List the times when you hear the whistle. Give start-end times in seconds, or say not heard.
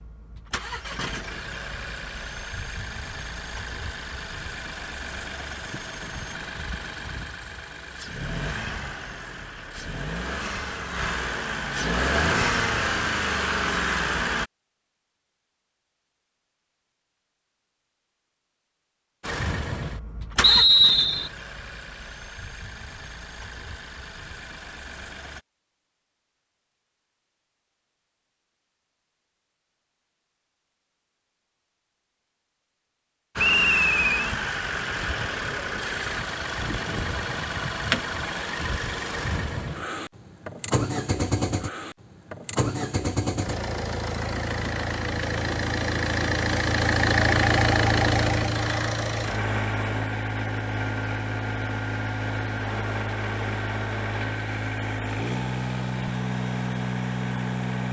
20.4-21.3, 33.4-34.4.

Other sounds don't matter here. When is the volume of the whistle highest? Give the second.
21 s.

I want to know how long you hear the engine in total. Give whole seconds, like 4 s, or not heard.
45 s.